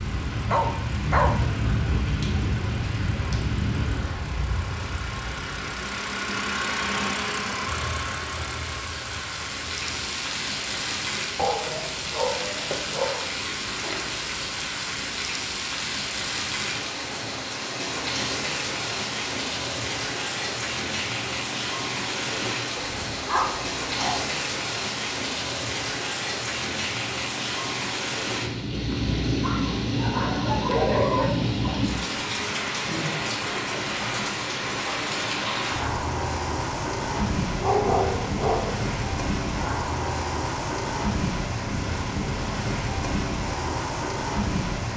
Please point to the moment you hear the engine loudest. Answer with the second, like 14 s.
7 s.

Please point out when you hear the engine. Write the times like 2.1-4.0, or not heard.
0.0-10.1.